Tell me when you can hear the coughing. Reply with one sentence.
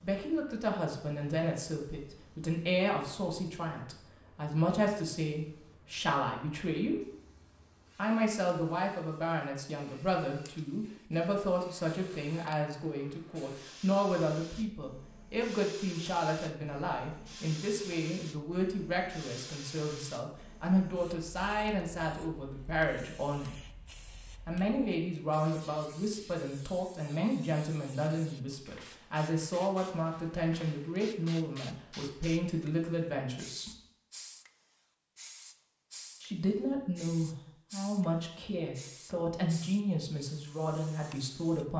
The coughing can't be heard in this clip.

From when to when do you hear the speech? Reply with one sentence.
You can hear the speech from 0.0 to 7.0 s, from 8.0 to 23.6 s, from 24.4 to 33.7 s and from 36.2 to 41.7 s.